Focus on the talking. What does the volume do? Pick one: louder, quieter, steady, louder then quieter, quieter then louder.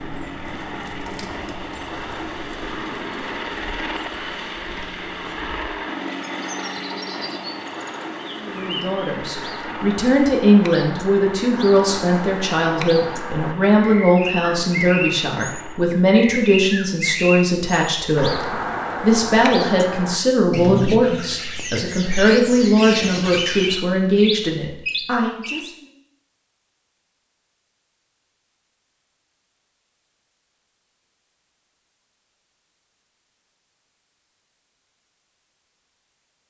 steady.